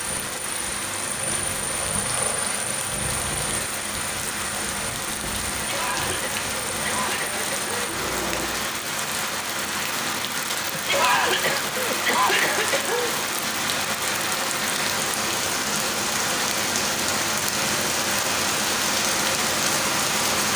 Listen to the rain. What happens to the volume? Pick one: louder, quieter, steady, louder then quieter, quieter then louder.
louder.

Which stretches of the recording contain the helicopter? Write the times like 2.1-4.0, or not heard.
0.0-8.7.